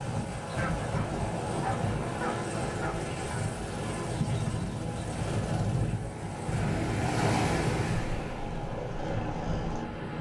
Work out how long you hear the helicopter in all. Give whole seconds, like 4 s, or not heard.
10 s.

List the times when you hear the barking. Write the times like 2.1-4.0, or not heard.
0.6-3.0.